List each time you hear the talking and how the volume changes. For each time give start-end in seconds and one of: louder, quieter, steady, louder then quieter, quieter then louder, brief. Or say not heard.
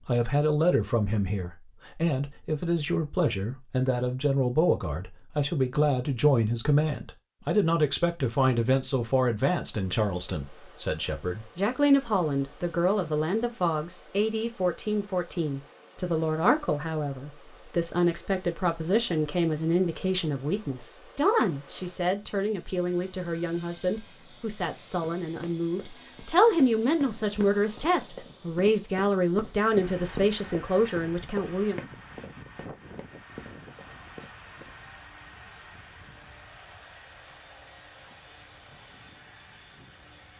0.1-31.8 steady.